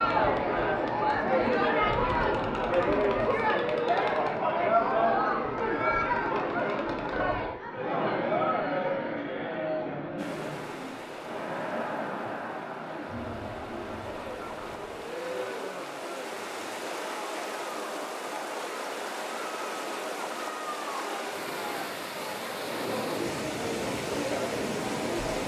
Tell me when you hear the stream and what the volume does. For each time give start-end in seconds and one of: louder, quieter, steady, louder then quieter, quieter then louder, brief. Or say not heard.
10.2-25.4 louder.